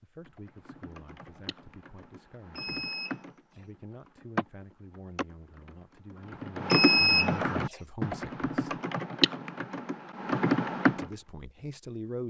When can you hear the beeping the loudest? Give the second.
7 s.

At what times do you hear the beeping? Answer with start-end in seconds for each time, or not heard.
2.5-3.6, 6.7-7.8.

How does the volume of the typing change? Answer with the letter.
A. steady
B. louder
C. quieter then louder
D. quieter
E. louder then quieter
B.